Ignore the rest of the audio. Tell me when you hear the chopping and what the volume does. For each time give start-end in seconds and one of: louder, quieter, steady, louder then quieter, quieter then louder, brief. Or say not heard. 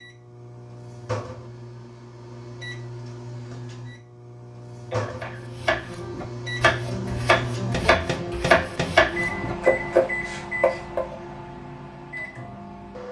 5.2-11.2 louder.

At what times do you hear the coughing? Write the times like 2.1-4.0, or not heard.
4.9-5.5.